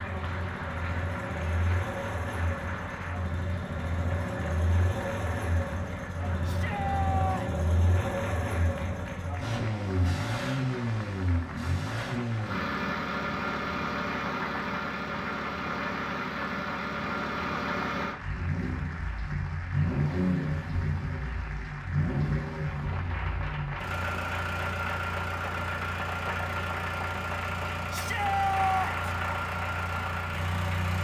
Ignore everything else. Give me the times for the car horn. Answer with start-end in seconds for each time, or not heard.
not heard.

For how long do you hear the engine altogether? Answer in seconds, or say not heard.
31 s.